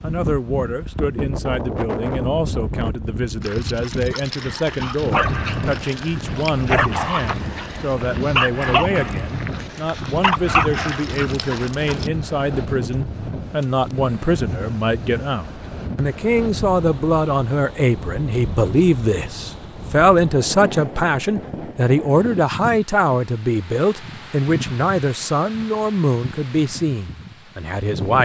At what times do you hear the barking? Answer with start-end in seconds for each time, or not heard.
3.4-12.1.